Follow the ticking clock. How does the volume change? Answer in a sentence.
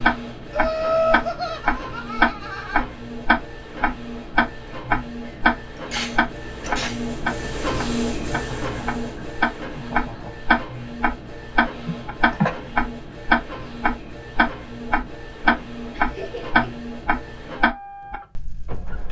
The volume of the ticking clock stays about the same.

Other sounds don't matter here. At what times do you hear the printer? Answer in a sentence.
You can hear the printer from 0.0 to 19.0 s.